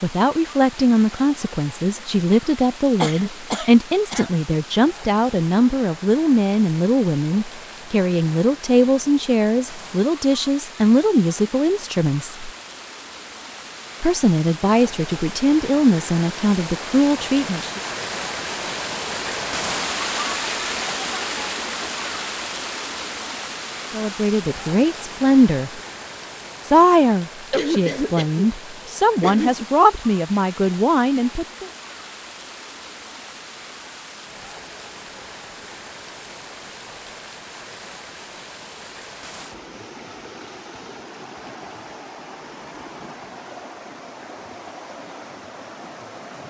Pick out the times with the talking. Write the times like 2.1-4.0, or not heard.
0.0-12.5, 14.0-17.8, 23.9-25.8, 26.6-31.7.